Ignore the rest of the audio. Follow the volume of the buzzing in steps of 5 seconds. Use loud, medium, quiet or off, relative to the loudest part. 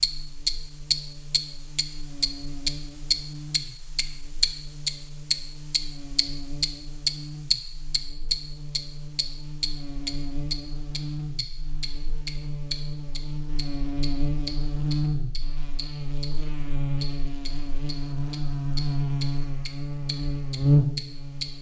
quiet, quiet, medium, medium, loud.